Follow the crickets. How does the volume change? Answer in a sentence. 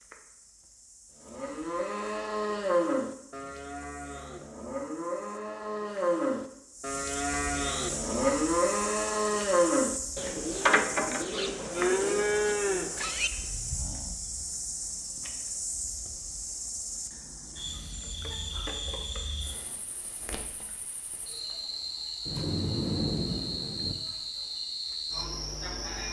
The loudness of the crickets goes up.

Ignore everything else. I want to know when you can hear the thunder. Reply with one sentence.
You can hear the thunder from 22.2 to 23.9 s.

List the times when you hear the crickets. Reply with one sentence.
You can hear the crickets from 0.0 to 26.0 s.